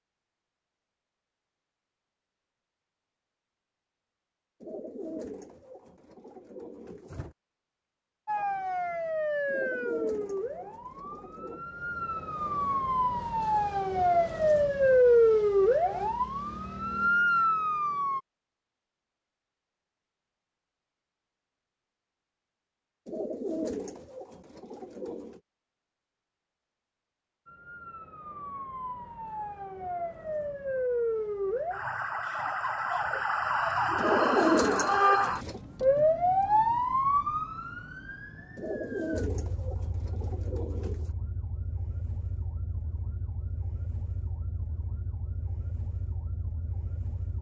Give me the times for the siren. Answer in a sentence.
You can hear the siren from 8.2 to 18.2 s and from 27.4 to 47.3 s.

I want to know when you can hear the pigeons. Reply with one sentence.
You can hear the pigeons from 4.6 to 7.3 s, from 9.4 to 11.7 s, from 23.1 to 25.4 s, from 34.0 to 35.6 s and from 38.5 to 41.1 s.